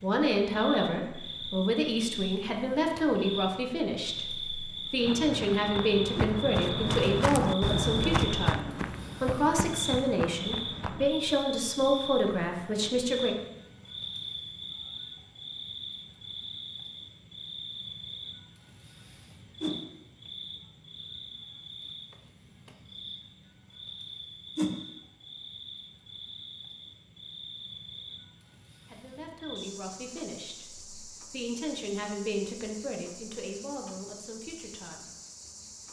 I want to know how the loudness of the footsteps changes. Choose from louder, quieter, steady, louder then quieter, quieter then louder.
louder then quieter.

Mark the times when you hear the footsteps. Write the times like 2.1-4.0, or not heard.
5.0-11.1.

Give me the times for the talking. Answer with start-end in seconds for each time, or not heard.
0.0-13.3, 28.9-35.0.